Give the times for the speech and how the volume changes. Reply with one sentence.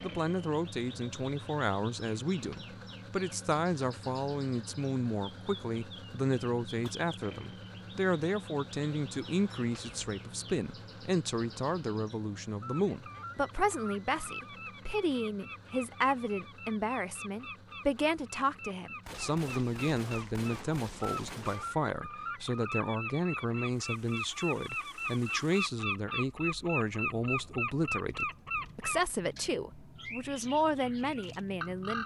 You can hear the speech from 0.0 to 32.0 s, at a steady volume.